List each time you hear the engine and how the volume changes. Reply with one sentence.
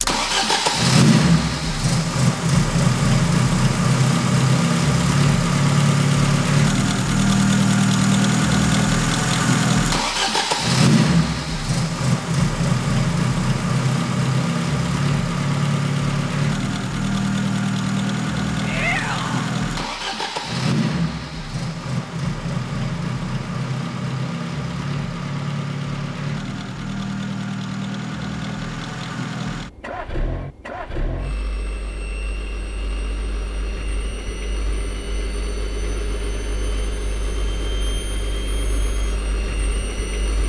The engine can be heard from 0.0 to 40.4 s, getting quieter.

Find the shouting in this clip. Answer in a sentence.
The shouting can be heard from 18.6 to 19.5 s.